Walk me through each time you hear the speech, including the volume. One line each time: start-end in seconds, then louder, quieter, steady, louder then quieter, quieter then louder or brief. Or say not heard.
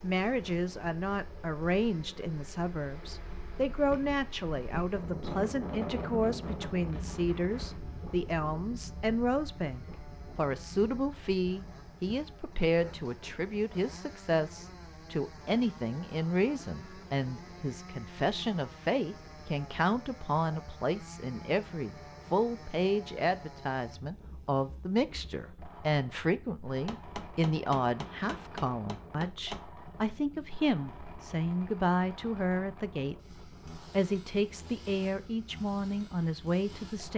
0.0-37.1 steady.